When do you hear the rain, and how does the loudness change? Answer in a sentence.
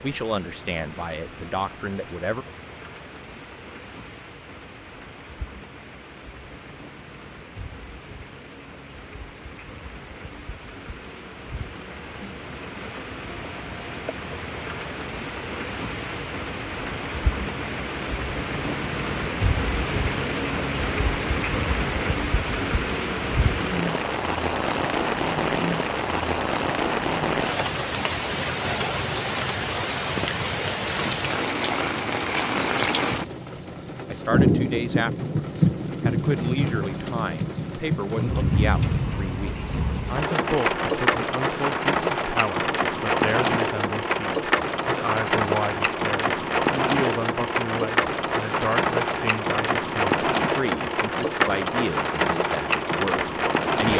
The rain can be heard from 0.0 to 53.9 s, getting louder.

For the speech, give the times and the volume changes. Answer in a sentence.
The speech can be heard briefly from 0.0 to 2.5 s; and from 33.5 to 53.9 s, at a steady volume.